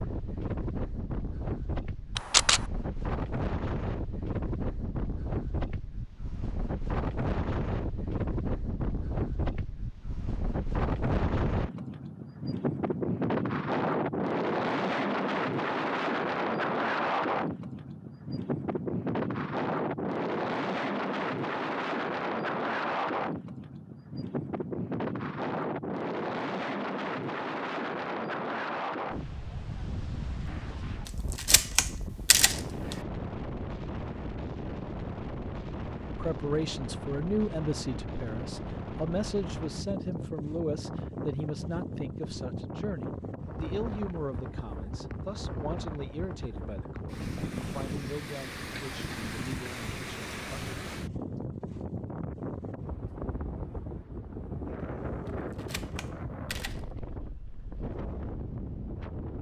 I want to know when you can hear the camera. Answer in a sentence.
The camera can be heard from 2.1 to 2.6 s, from 31.1 to 33.0 s and from 55.2 to 56.8 s.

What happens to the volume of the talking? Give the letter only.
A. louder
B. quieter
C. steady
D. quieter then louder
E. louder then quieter
B.